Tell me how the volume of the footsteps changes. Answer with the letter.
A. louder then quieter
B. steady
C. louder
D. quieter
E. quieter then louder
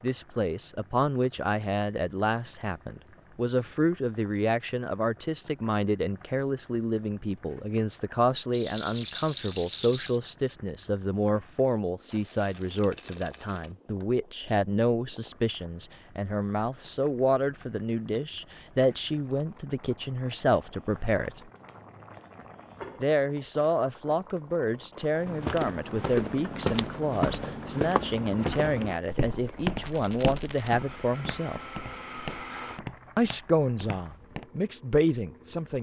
D.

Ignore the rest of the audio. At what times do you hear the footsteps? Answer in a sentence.
You can hear the footsteps from 25.2 to 34.5 s.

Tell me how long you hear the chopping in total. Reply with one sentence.
You can't hear the chopping here.